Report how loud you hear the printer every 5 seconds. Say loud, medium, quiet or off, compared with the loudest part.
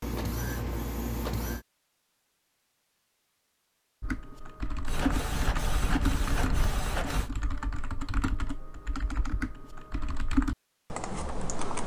loud, loud, off.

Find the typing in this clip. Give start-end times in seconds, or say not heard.
4.0-11.8.